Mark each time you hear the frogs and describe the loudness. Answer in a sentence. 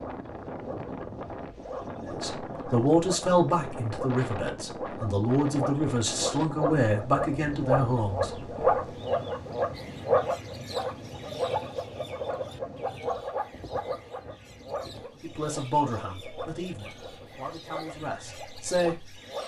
You can hear the frogs from 0.0 to 19.4 s, getting louder then quieter.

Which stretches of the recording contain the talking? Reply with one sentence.
The talking can be heard from 2.1 to 8.3 s and from 15.2 to 19.1 s.